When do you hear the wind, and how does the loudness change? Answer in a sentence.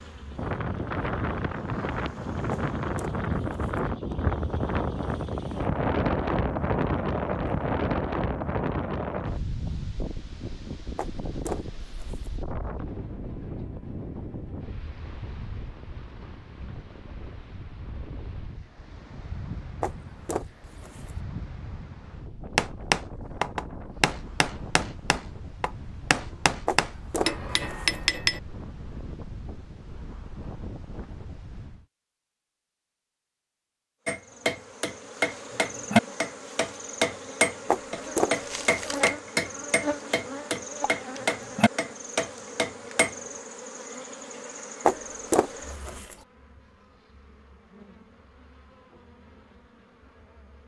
The wind can be heard from 0.0 to 31.9 s, getting quieter.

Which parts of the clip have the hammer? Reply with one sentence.
You can hear the hammer from 22.6 to 28.4 s and from 34.0 to 43.1 s.